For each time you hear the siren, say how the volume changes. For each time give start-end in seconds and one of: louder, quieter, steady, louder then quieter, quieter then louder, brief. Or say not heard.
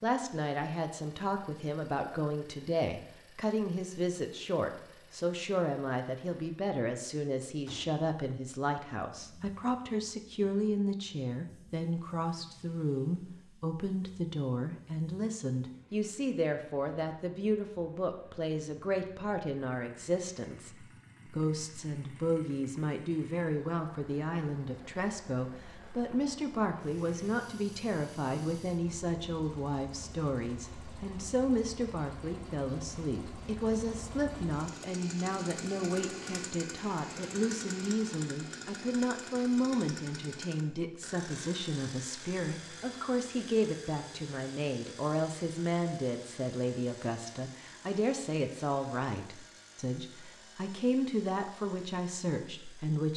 not heard.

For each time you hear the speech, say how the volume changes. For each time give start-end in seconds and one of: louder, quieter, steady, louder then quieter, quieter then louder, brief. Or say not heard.
0.0-53.1 steady.